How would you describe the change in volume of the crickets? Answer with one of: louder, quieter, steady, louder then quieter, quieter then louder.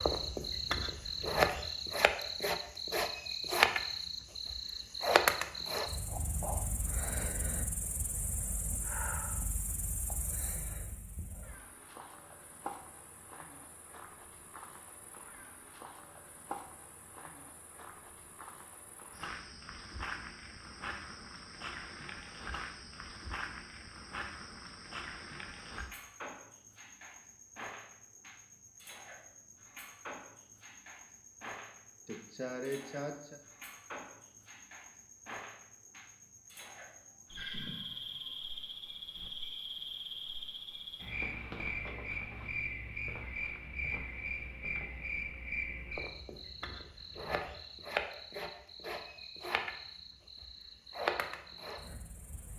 quieter then louder.